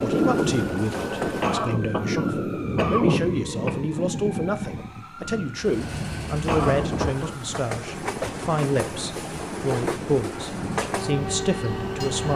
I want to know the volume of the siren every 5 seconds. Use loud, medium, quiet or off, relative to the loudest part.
loud, medium, medium.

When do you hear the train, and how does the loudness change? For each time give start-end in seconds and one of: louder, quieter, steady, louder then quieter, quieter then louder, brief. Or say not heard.
0.0-1.6 brief
5.5-12.3 steady.